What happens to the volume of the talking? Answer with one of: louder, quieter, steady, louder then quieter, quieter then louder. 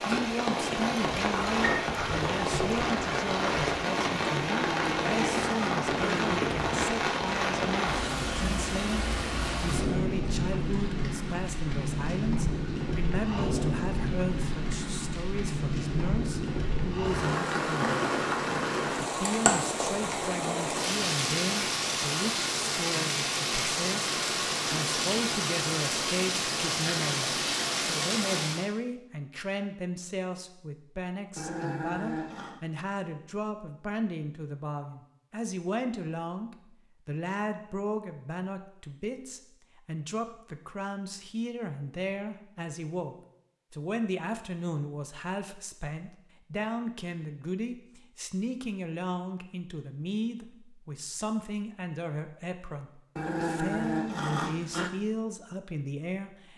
steady.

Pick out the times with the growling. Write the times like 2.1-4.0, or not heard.
4.4-6.4, 31.4-32.6, 53.1-54.9.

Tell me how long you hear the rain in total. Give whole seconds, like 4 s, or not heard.
29 s.